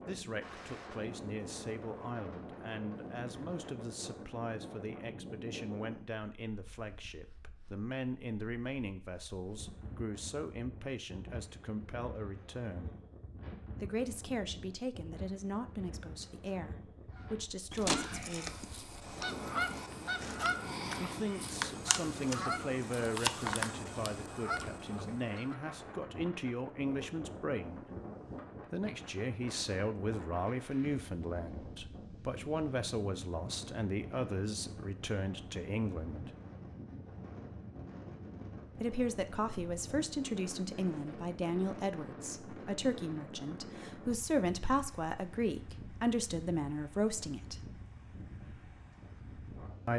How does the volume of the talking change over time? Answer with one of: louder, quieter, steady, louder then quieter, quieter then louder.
louder.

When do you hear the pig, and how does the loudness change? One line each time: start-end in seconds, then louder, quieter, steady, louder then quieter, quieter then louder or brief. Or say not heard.
not heard.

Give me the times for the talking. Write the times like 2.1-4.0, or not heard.
0.1-12.9, 13.8-18.6, 20.9-27.9, 28.7-36.3, 38.8-47.6.